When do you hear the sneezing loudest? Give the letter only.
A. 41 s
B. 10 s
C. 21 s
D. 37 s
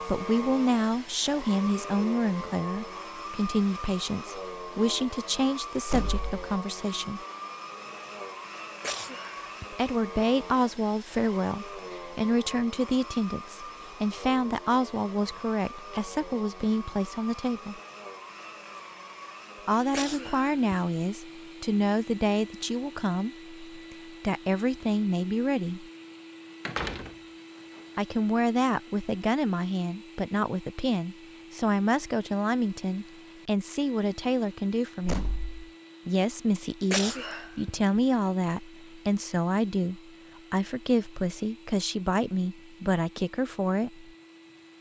D.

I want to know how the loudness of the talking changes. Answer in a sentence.
The volume of the talking stays about the same.